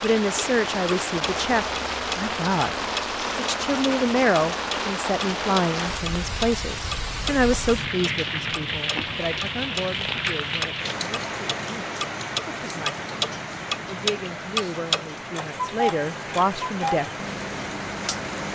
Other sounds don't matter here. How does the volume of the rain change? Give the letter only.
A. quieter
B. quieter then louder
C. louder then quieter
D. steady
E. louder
A.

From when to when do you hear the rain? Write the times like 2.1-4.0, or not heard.
0.0-18.5.